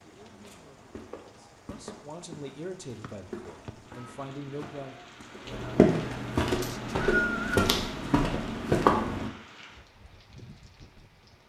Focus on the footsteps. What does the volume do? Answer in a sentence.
The volume of the footsteps goes up.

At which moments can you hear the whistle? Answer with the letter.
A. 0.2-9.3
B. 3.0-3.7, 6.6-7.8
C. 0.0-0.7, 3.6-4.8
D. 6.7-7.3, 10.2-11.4
B.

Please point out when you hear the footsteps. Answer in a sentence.
The footsteps can be heard from 0.2 to 9.3 s.